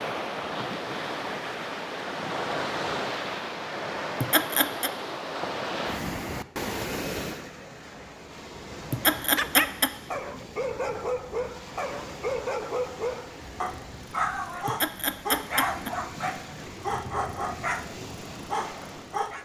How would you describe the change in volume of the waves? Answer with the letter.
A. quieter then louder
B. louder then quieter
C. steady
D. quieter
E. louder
D.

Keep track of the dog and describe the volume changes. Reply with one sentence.
The loudness of the dog stays about the same.